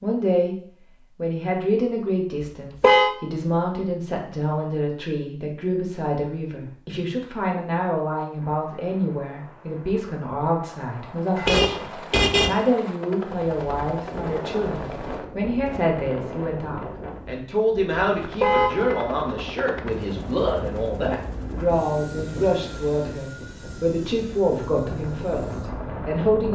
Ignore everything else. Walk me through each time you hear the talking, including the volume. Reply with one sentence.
You can hear the talking briefly from 0.0 to 0.6 s; and from 1.1 to 26.5 s, at a steady volume.